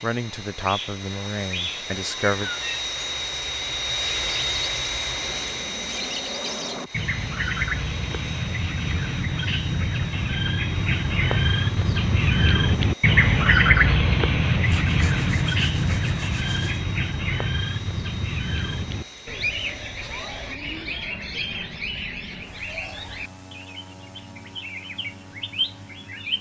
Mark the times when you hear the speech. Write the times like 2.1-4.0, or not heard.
0.0-2.5.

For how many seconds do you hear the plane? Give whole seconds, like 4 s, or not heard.
26 s.